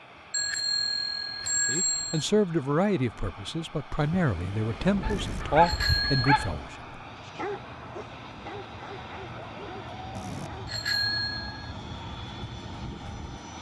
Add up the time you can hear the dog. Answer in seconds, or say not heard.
6 s.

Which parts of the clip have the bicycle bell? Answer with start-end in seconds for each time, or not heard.
0.3-2.2, 5.0-6.5, 10.1-11.8.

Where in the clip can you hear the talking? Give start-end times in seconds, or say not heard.
1.4-7.5.